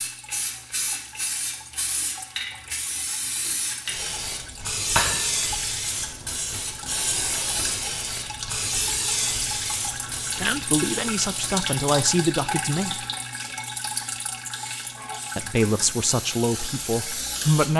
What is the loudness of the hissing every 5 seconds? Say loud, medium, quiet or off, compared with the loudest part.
loud, loud, medium, medium.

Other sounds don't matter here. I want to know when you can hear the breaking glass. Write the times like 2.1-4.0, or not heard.
5.0-5.5.